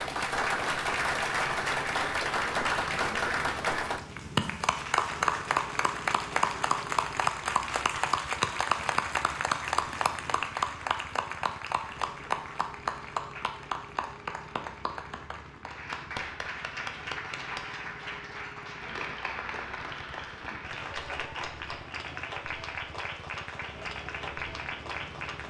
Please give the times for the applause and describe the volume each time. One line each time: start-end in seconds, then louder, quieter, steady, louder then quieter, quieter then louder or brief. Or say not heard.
0.0-25.4 quieter.